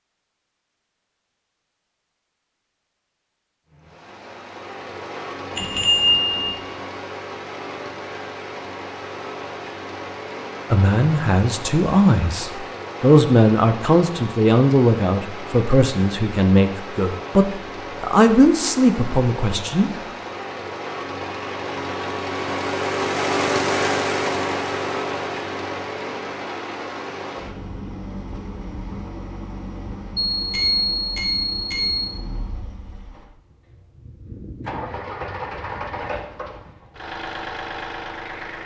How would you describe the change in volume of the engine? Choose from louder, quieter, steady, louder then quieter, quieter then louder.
louder then quieter.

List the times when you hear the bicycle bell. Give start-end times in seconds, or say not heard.
5.5-6.5, 30.3-32.1.